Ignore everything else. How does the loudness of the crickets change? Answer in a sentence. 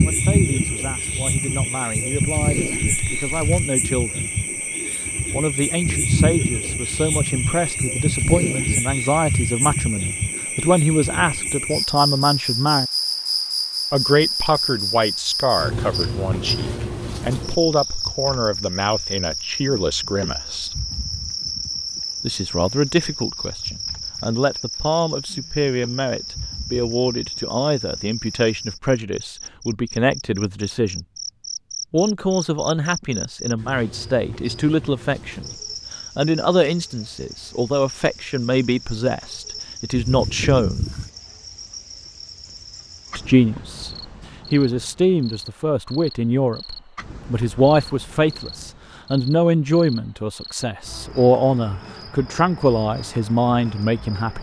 The volume of the crickets goes down.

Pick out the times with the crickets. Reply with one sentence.
The crickets can be heard from 0.0 to 54.3 s.